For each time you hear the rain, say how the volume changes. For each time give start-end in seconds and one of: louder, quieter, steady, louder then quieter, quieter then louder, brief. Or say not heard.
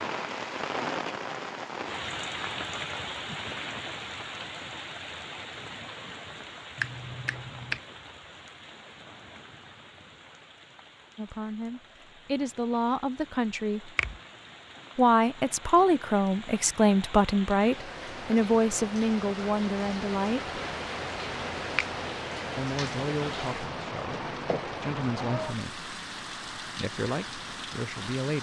0.0-28.3 quieter then louder.